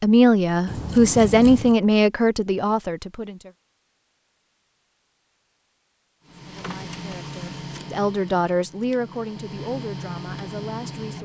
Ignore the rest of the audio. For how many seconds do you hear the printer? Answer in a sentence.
The printer can be heard for 5 seconds in total.